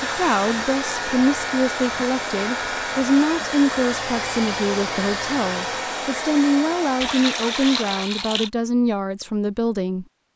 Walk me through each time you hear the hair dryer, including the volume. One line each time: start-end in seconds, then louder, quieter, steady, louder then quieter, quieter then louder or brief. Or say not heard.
0.0-8.1 steady.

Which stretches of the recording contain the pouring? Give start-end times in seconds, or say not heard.
7.0-8.5.